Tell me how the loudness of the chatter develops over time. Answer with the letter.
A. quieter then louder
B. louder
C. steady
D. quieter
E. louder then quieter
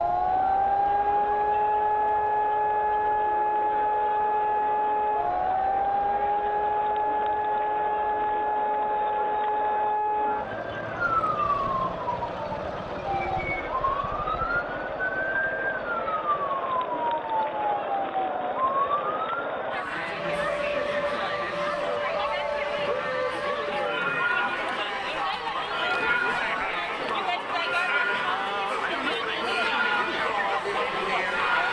B.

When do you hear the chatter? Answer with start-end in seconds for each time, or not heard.
0.1-31.6.